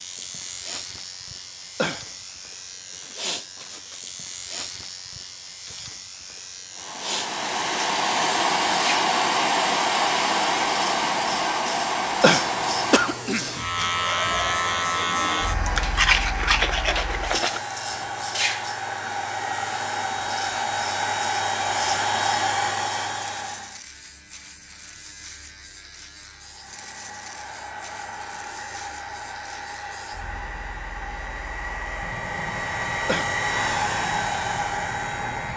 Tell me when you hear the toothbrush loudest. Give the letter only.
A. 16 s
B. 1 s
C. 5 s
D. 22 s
A.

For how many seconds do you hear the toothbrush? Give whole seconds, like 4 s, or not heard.
2 s.